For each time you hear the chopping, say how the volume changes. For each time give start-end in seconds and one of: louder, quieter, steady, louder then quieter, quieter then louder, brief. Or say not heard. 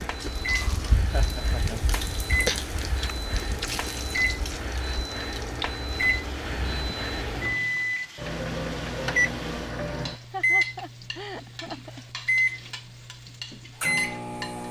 not heard.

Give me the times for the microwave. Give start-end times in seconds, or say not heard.
0.0-14.6.